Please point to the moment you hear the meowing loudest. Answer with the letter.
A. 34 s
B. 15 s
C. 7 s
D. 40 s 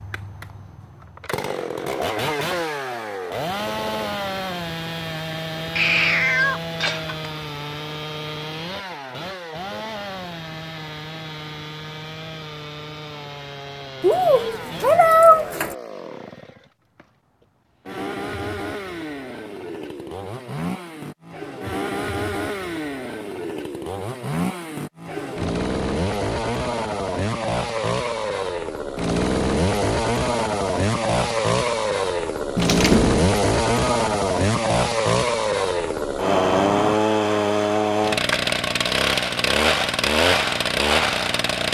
B.